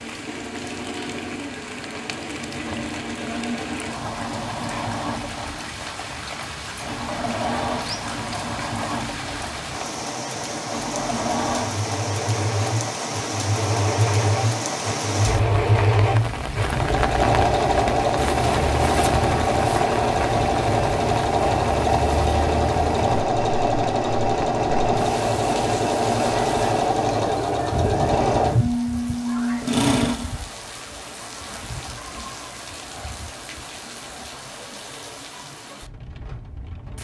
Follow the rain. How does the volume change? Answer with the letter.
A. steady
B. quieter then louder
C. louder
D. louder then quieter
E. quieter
D.